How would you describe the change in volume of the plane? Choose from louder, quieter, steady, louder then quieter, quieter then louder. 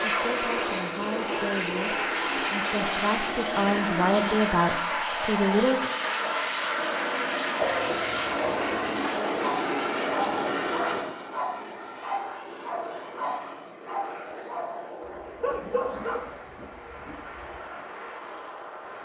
quieter.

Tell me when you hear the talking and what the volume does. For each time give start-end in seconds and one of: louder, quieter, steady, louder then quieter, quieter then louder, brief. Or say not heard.
0.0-5.9 louder.